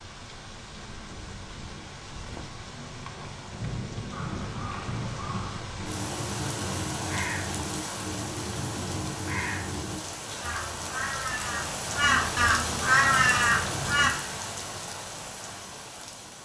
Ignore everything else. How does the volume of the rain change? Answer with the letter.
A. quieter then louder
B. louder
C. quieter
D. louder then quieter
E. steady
B.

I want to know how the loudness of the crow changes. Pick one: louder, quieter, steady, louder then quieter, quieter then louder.
louder.